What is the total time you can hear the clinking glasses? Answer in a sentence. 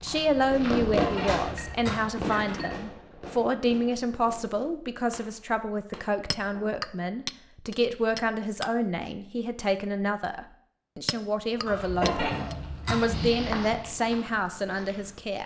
The clinking glasses can be heard for 5 seconds in total.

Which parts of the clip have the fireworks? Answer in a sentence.
You can hear the fireworks from 0.3 to 6.8 s.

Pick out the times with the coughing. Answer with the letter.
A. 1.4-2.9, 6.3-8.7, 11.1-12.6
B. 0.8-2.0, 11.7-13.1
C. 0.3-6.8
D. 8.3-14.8
B.